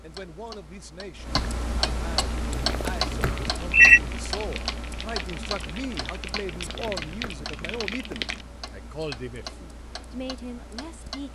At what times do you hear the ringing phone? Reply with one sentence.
You can hear the ringing phone from 3.2 to 4.0 s.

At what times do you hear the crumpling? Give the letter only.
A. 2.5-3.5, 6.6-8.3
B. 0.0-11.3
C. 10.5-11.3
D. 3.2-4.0
A.